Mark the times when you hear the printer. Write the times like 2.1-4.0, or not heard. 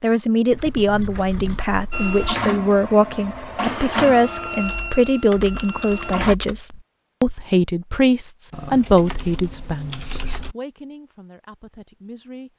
1.9-6.3.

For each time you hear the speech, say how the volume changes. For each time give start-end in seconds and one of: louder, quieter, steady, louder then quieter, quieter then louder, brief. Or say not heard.
0.0-12.5 quieter.